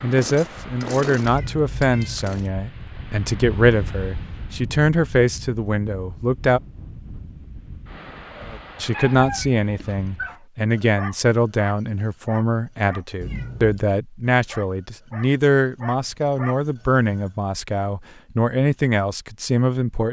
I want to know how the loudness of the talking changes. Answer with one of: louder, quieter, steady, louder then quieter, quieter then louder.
steady.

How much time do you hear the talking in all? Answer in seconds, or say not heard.
18 s.